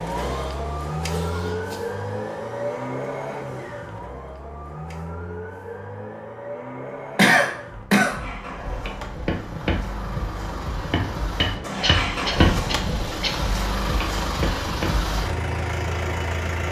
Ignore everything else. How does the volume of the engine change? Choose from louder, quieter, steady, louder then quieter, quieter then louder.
quieter then louder.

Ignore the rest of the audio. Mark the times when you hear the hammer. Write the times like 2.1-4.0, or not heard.
8.4-15.1.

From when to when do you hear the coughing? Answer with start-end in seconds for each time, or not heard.
0.1-1.8, 7.2-8.2, 11.8-13.5.